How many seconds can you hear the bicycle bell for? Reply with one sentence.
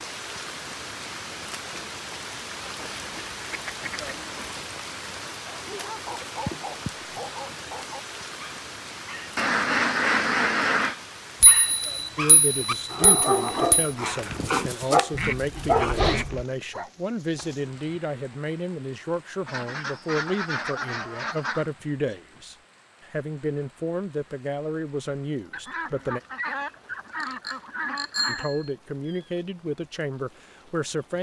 The bicycle bell can be heard for 4 seconds in total.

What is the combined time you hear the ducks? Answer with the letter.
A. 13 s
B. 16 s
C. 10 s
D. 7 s
C.